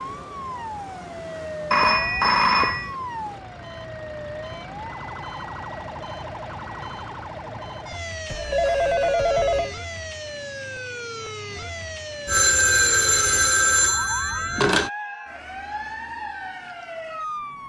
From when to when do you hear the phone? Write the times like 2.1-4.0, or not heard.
1.7-3.0, 8.2-9.7, 12.2-14.9.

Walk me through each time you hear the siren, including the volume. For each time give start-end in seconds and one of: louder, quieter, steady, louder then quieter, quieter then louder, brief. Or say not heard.
0.0-17.6 steady.